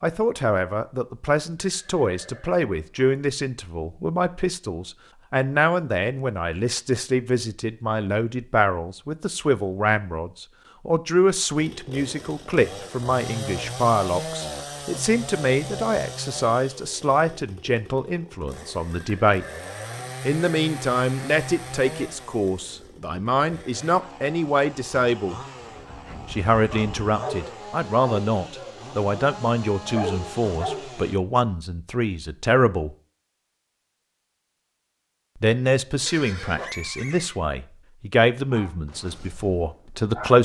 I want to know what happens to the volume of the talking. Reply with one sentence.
The loudness of the talking stays about the same.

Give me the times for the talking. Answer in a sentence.
The talking can be heard from 0.0 to 19.4 s, from 20.2 to 25.4 s, from 26.3 to 33.0 s and from 35.4 to 40.3 s.